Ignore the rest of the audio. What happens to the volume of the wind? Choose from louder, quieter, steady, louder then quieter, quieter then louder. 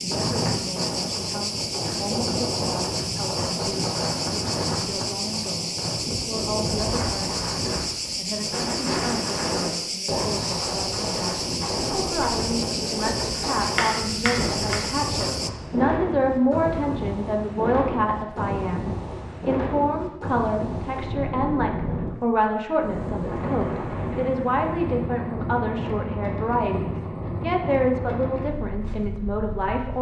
steady.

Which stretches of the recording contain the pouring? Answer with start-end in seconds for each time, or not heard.
not heard.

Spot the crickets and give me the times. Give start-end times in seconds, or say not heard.
0.0-15.5.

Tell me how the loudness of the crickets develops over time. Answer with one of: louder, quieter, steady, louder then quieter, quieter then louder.
steady.